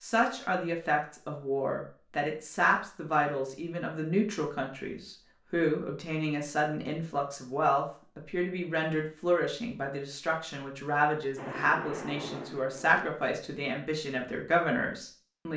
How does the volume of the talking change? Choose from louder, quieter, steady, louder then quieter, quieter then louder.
steady.